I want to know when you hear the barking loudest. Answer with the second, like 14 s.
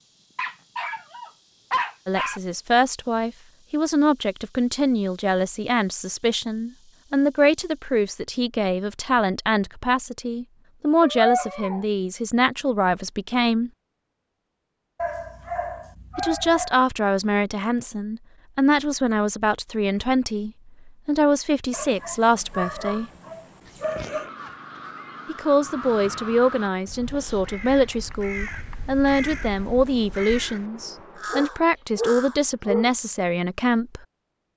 11 s.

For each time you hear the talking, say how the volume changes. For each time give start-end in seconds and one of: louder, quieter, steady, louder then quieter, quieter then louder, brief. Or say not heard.
2.0-13.7 steady
16.1-23.1 steady
25.2-34.0 steady.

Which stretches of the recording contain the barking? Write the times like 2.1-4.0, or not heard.
0.3-2.4, 11.0-11.8, 14.9-16.8, 21.7-24.3, 31.3-32.9.